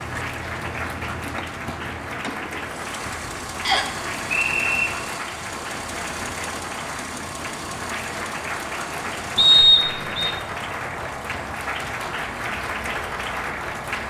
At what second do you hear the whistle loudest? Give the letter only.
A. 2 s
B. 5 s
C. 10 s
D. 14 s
C.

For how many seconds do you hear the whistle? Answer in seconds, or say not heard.
2 s.